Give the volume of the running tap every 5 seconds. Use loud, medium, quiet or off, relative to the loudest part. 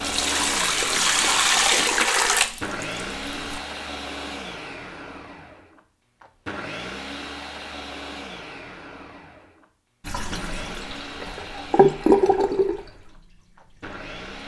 loud, off, loud.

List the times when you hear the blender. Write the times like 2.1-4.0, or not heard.
0.0-14.4.